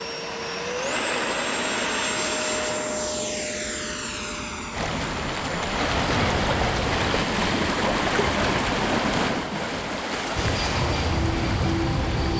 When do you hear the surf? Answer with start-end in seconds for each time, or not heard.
4.7-12.3.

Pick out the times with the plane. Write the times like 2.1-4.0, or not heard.
0.0-7.1, 10.3-12.3.